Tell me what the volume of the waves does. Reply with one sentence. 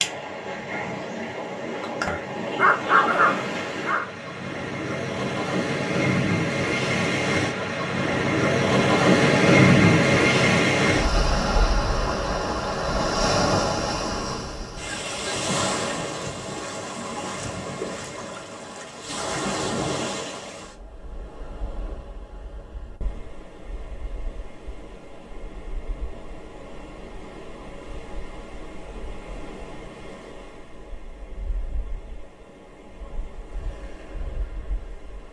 The loudness of the waves goes up, then down.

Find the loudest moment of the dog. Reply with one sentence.
The loudest moment of the dog is at 3 seconds.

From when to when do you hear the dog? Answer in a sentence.
The dog can be heard from 2.0 to 4.0 s.